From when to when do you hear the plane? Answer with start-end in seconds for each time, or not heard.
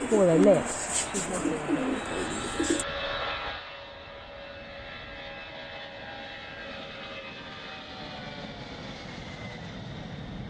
0.0-10.4.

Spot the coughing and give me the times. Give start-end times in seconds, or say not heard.
not heard.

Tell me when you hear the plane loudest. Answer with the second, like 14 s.
3 s.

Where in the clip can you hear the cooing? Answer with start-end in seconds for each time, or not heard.
0.0-2.9.